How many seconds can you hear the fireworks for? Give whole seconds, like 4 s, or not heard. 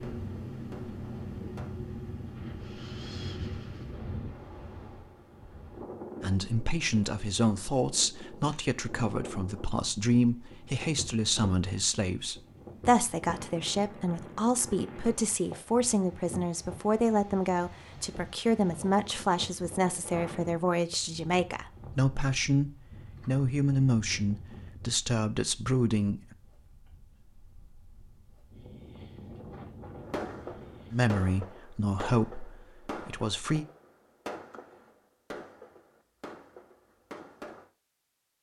9 s.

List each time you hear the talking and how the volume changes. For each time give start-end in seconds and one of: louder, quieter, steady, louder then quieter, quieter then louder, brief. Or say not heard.
6.2-26.2 steady
30.9-33.6 brief.